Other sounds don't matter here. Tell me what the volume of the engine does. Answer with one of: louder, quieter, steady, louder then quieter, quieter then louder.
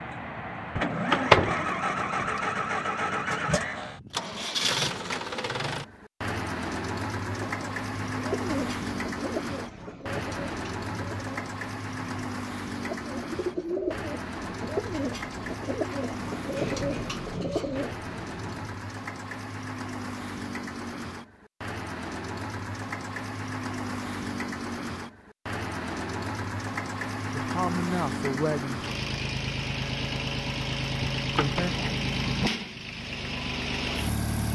quieter then louder.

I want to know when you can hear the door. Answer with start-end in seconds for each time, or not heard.
0.8-2.4, 31.1-31.6.